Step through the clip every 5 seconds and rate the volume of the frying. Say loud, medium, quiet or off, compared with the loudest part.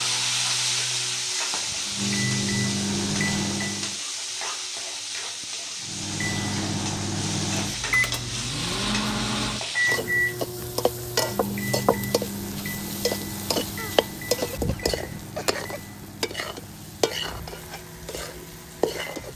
loud, loud, loud, medium.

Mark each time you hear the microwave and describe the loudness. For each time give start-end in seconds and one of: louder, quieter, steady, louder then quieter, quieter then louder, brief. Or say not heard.
1.3-4.0 brief
5.8-19.3 quieter.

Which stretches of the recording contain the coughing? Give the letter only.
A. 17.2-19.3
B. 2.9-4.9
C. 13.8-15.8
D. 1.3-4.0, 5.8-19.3
C.